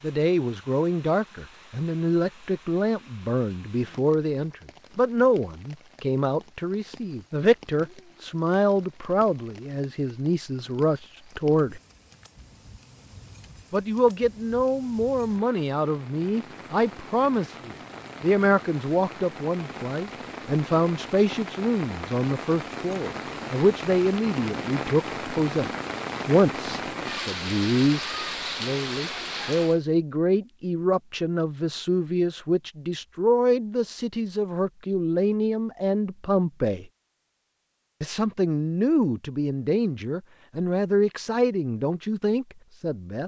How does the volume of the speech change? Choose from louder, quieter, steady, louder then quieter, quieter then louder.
steady.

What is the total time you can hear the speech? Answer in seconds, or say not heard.
40 s.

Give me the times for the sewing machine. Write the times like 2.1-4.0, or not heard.
not heard.